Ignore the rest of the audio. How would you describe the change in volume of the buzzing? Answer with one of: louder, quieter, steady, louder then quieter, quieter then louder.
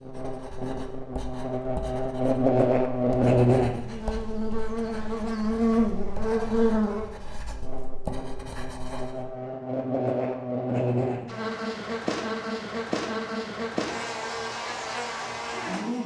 quieter.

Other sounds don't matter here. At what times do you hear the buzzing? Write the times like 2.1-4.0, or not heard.
0.0-16.0.